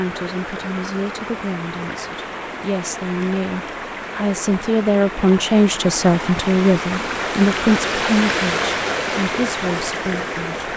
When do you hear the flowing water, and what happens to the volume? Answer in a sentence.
The flowing water can be heard from 0.0 to 10.7 s, getting louder.